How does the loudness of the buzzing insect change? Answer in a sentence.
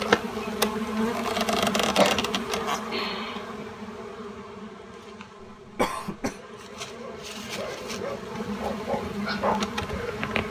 The volume of the buzzing insect goes down, then up.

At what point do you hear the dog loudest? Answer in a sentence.
The loudest moment of the dog is at 9 seconds.